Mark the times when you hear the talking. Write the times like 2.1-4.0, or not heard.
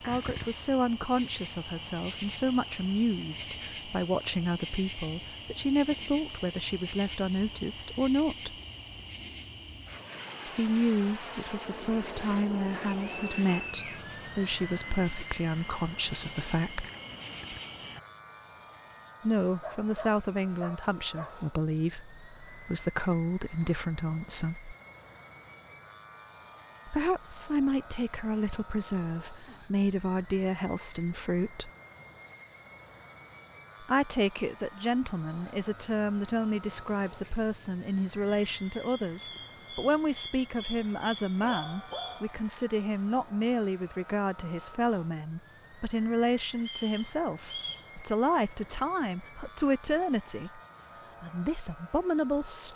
0.1-8.6, 10.4-16.9, 19.2-24.8, 26.9-31.7, 33.8-50.6, 51.2-52.7.